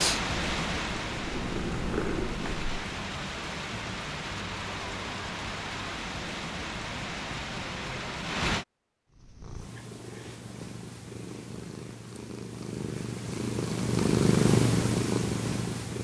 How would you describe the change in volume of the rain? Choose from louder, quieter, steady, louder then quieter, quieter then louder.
steady.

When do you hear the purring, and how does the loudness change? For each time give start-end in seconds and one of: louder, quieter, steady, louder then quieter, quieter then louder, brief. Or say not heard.
0.0-2.9 brief
9.1-15.9 louder.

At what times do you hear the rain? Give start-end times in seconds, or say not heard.
0.0-8.7.